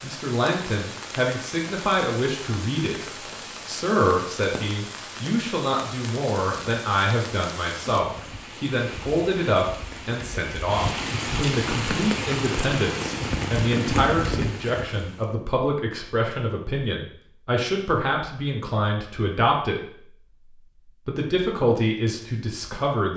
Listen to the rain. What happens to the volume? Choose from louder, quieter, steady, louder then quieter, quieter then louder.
louder.